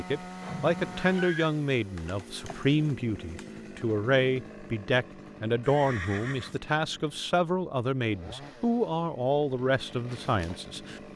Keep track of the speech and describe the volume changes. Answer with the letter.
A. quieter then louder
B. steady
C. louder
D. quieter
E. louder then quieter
B.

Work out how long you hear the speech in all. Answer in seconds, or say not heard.
11 s.